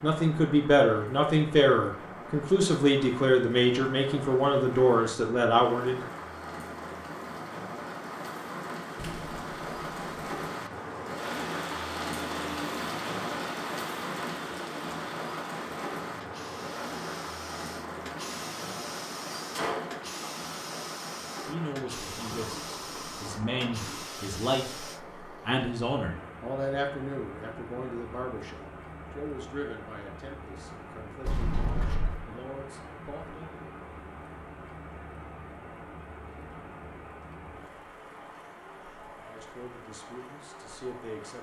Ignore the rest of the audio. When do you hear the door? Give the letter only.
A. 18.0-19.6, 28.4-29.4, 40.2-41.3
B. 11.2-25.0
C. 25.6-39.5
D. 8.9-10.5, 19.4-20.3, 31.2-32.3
D.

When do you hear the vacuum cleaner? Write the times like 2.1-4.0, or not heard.
11.2-25.0.